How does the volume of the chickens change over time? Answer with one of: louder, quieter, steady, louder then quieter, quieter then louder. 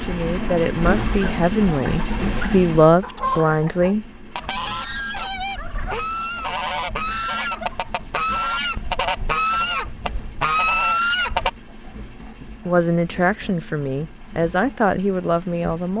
louder.